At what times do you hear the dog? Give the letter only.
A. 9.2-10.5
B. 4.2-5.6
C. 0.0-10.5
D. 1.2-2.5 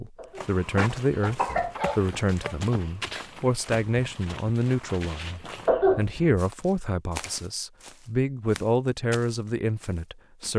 D.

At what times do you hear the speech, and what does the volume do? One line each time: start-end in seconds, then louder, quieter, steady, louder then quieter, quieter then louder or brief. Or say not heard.
0.0-10.5 steady.